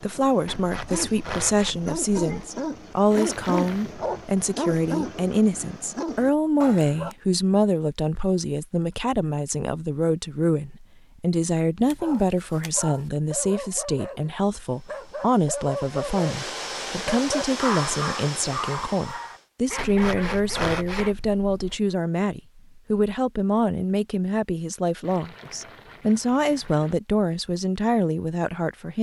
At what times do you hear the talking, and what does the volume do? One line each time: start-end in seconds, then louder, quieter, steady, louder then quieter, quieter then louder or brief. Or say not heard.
0.0-28.9 steady.